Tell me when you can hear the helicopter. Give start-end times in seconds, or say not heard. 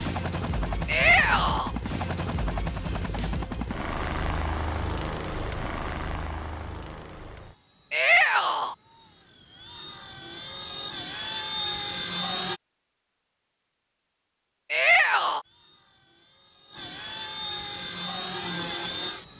0.0-12.6, 15.4-19.3.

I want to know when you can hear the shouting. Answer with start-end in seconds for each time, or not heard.
0.8-1.7, 7.9-8.8, 14.7-15.4.